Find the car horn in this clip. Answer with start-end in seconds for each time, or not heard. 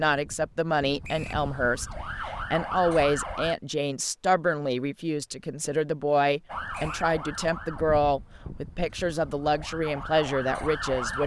not heard.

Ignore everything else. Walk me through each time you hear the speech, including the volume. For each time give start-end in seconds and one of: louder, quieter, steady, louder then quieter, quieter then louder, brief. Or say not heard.
0.0-11.2 steady.